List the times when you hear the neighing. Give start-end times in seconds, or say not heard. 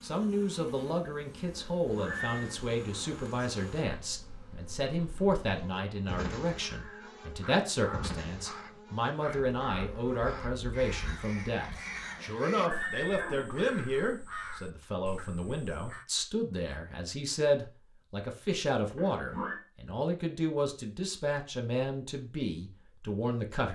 1.6-2.5, 12.2-13.6, 18.9-19.6.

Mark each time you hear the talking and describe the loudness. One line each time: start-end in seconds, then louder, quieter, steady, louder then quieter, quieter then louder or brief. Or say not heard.
0.0-23.7 steady.